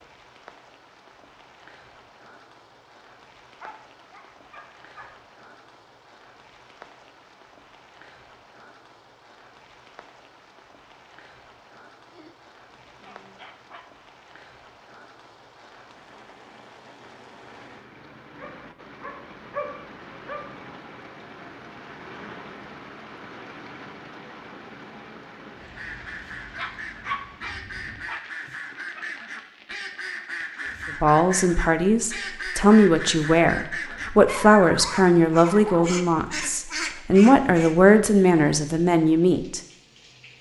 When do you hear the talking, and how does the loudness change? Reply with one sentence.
You can hear the talking from 31.0 to 39.6 s, at a steady volume.